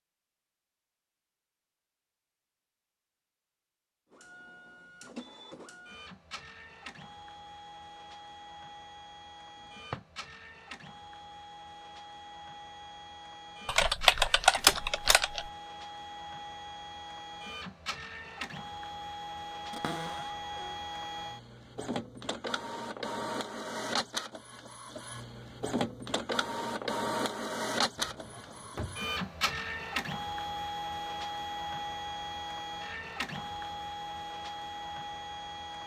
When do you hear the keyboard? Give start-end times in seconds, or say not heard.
13.7-15.5.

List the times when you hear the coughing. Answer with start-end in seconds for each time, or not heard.
not heard.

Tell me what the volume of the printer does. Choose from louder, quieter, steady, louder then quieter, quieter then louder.
louder.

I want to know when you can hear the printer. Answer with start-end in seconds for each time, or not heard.
4.1-35.8.